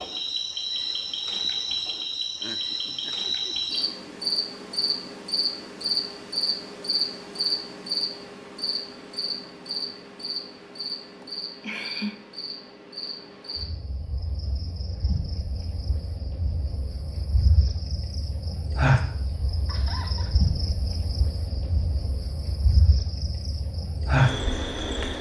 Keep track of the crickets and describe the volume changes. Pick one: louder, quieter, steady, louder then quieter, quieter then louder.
quieter then louder.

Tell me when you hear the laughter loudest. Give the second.
12 s.